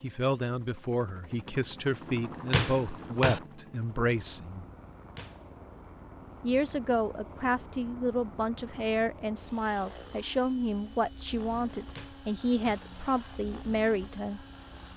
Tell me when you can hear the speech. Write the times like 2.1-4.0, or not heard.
0.0-4.7, 6.4-14.4.